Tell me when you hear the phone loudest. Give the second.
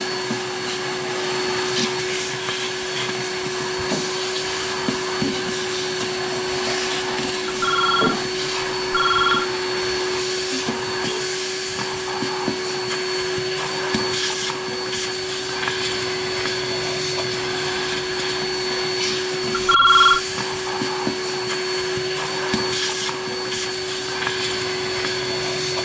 20 s.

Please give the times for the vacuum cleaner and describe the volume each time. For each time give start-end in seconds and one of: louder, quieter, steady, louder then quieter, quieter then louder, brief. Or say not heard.
0.0-25.8 steady.